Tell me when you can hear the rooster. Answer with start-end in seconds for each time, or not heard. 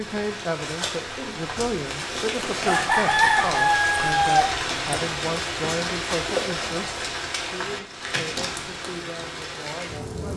2.6-5.0.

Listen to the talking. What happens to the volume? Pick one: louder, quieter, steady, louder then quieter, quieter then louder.
quieter.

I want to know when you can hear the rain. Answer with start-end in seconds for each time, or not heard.
0.0-10.3.